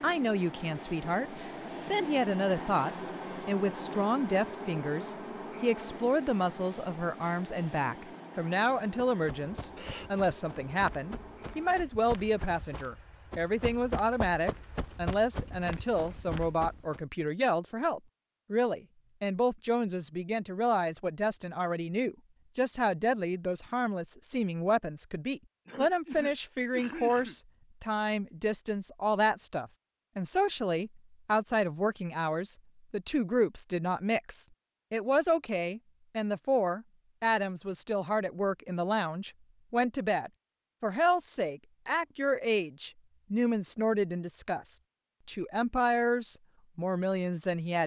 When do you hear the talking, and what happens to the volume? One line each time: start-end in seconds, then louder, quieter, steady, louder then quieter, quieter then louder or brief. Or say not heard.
0.0-47.8 steady.